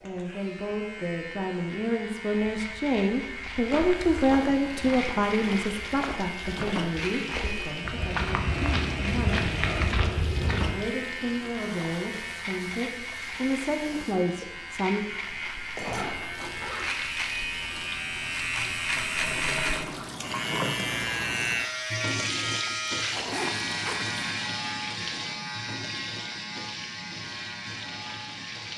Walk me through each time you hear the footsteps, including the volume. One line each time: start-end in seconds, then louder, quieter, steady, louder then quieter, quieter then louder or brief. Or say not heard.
3.5-10.8 louder.